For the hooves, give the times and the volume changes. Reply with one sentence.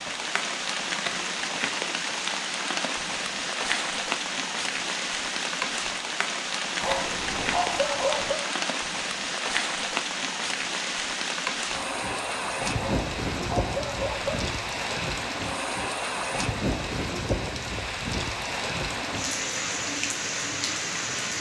You can't hear the hooves here.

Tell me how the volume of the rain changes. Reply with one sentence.
The volume of the rain stays about the same.